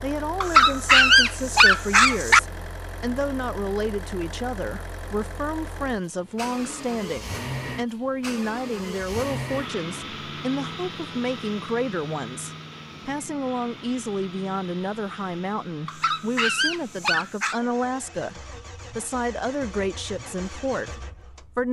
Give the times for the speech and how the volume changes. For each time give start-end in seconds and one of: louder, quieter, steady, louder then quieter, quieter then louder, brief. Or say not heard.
0.0-21.6 steady.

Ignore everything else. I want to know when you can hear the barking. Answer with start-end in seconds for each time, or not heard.
0.4-2.4, 15.8-17.6.